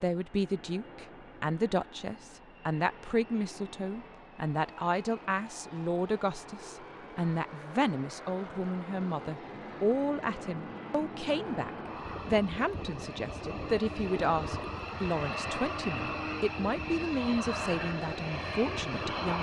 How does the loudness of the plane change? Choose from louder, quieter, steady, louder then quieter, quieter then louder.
louder.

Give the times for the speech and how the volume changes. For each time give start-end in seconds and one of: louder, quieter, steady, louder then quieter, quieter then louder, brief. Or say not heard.
0.0-19.3 steady.